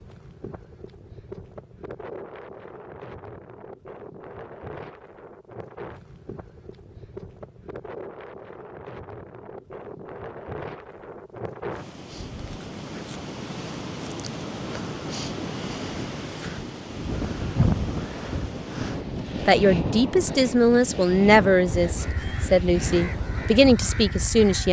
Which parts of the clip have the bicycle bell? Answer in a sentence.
You can't hear the bicycle bell here.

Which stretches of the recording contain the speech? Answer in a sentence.
You can hear the speech from 19.4 to 24.6 s.